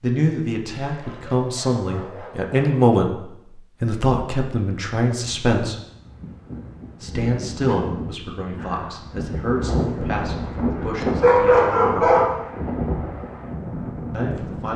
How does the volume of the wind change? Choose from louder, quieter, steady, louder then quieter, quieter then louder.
louder.